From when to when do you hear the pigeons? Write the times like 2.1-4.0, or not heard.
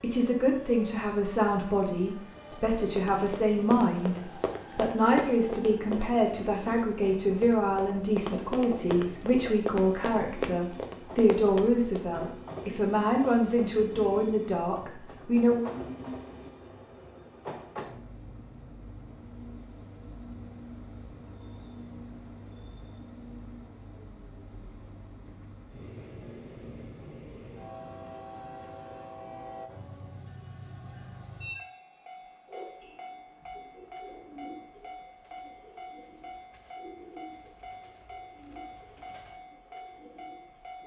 32.5-40.8.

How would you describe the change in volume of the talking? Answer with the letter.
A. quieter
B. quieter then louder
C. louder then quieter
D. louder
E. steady
E.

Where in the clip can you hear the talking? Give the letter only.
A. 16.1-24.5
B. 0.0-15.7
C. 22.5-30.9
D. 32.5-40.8
B.